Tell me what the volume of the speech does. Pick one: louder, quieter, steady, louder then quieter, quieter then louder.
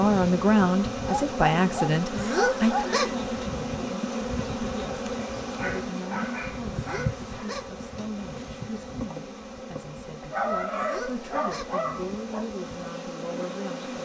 quieter.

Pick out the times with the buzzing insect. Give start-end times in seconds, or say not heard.
0.0-14.0.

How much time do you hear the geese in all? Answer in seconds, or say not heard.
3 s.